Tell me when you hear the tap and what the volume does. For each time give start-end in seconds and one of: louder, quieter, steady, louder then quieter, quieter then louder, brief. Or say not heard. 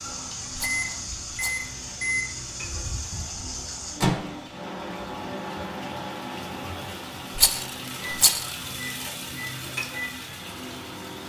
0.0-11.2 louder.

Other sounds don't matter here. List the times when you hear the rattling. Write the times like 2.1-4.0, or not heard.
0.6-1.8, 7.3-8.6.